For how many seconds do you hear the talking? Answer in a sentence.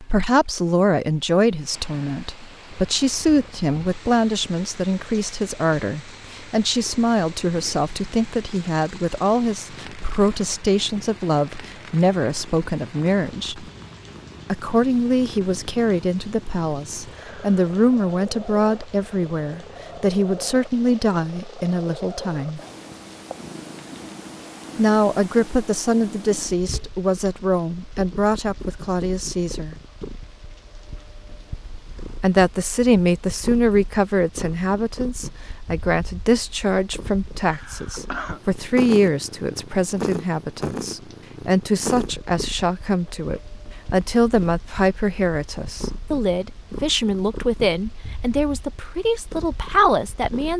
You can hear the talking for 45 seconds altogether.